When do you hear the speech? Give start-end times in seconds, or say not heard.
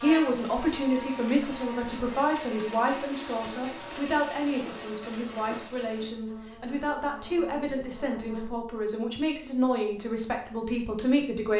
0.0-11.5.